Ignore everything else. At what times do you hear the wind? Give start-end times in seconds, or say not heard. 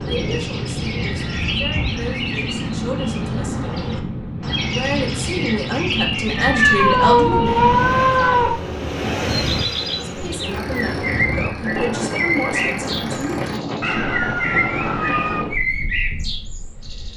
0.0-17.1.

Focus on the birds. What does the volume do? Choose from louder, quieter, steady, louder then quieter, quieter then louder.
steady.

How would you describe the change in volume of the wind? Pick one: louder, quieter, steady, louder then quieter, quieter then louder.
steady.